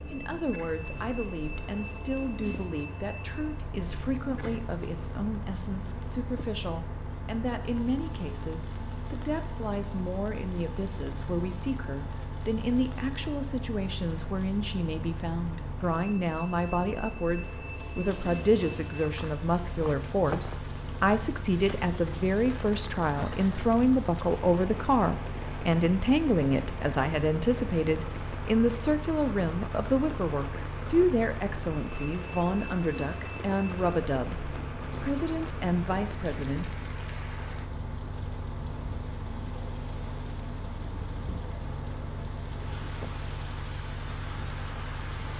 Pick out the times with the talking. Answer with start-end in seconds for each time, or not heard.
0.1-36.7.